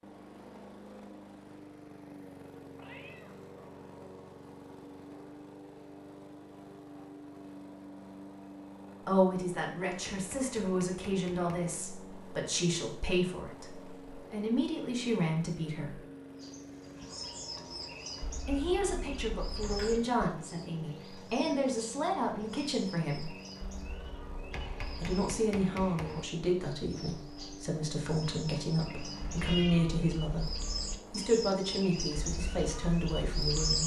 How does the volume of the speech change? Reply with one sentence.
The volume of the speech stays about the same.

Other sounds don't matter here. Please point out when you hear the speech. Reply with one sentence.
The speech can be heard from 9.1 to 16.0 s, from 18.4 to 23.3 s and from 25.0 to 33.8 s.